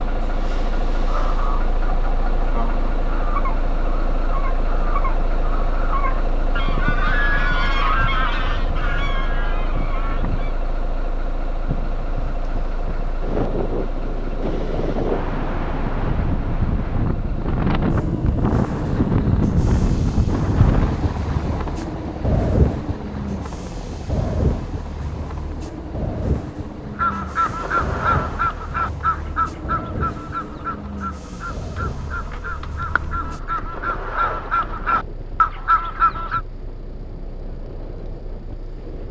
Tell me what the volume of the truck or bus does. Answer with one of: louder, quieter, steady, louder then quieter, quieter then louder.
quieter.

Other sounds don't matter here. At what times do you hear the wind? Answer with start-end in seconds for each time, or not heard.
11.7-39.0.